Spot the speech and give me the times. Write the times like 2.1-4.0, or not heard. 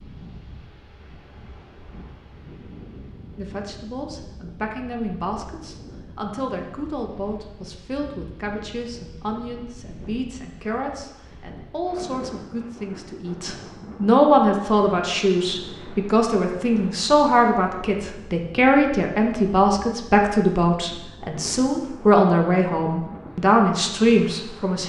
3.4-24.8.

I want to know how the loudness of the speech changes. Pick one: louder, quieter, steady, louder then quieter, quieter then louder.
louder.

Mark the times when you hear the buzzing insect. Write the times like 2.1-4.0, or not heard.
not heard.